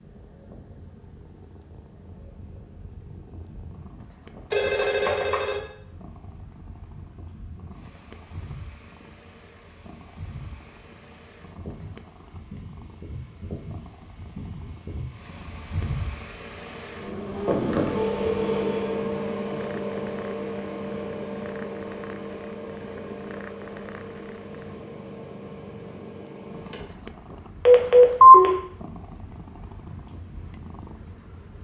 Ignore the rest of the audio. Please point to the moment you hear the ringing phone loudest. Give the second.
28 s.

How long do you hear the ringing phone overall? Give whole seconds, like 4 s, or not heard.
3 s.